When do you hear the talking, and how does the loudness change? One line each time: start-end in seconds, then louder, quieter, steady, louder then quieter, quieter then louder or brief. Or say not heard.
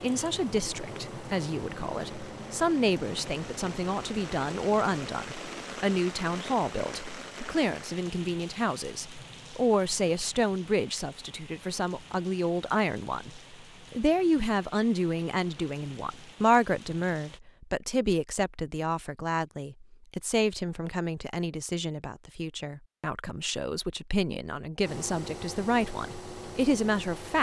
0.0-27.3 steady.